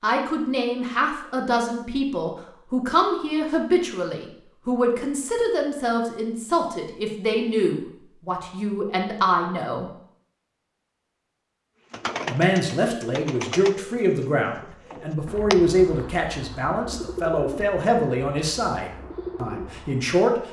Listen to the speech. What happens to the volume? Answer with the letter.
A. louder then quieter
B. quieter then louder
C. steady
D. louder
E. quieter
C.